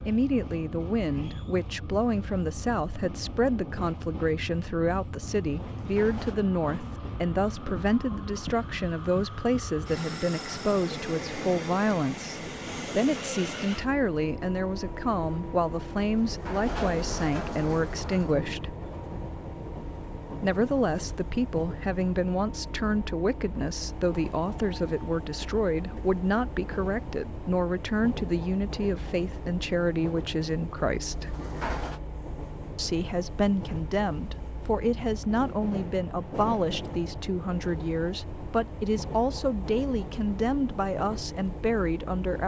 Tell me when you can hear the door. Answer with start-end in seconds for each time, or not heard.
5.7-6.4, 16.2-18.5, 31.1-32.0.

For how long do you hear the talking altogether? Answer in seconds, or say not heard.
39 s.